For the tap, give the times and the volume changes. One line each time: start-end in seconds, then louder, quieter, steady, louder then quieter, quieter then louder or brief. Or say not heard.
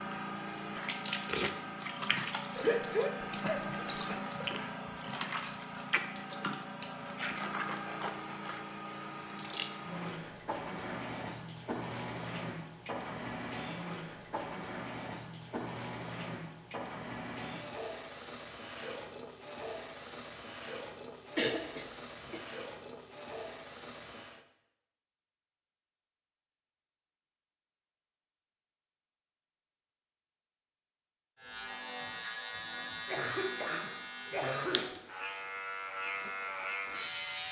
0.0-24.4 quieter.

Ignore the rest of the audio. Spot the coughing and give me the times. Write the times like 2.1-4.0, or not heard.
2.5-4.2, 21.4-22.4, 33.0-34.9.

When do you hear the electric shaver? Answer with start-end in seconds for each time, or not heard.
31.4-37.4.